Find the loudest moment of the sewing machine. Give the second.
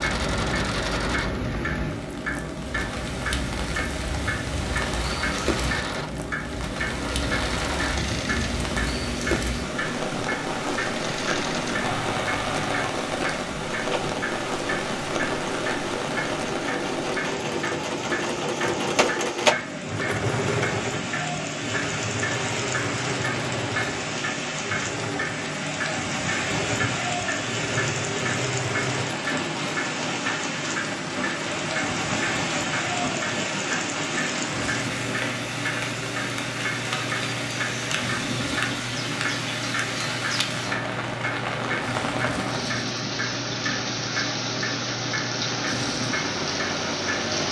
19 s.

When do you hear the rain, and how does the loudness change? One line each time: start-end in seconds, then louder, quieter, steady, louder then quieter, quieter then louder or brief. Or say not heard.
0.0-47.4 steady.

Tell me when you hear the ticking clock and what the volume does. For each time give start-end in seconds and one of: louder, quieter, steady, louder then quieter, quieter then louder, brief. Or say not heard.
0.0-47.4 steady.